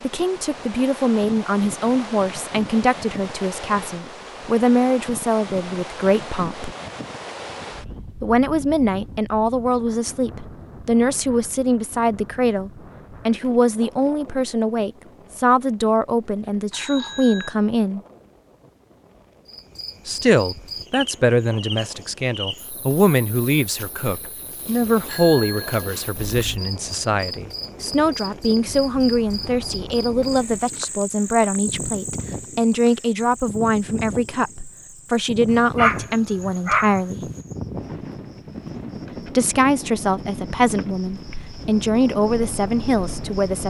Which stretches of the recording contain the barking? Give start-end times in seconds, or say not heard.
35.5-37.4.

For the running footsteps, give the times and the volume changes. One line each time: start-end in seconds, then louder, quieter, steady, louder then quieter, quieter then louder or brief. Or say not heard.
not heard.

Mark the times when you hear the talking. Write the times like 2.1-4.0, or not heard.
0.0-6.8, 8.2-18.0, 20.1-37.2, 39.2-43.6.